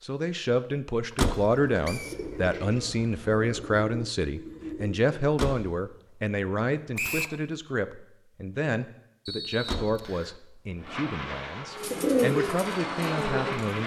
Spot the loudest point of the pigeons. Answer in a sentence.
The loudest moment of the pigeons is at 12 seconds.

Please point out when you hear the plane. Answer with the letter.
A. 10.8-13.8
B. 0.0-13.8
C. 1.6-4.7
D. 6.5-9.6
A.